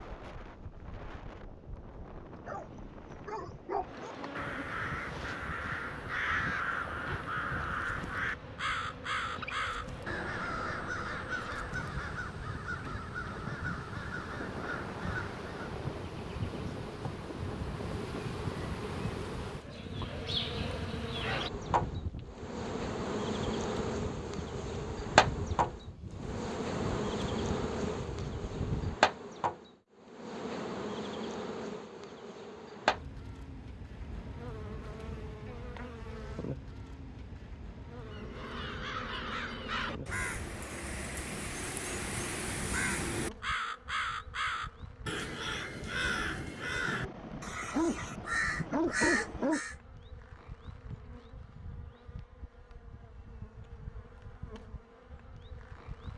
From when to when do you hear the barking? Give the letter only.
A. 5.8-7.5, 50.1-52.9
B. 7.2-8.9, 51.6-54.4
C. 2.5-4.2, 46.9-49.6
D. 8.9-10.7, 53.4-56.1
C.